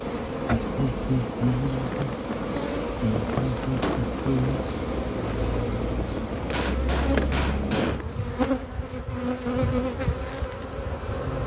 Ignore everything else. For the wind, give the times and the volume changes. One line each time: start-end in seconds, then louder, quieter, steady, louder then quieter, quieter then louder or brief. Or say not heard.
0.2-8.3 steady.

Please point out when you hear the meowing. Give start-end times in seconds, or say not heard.
not heard.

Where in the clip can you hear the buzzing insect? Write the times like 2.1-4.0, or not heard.
0.0-11.4.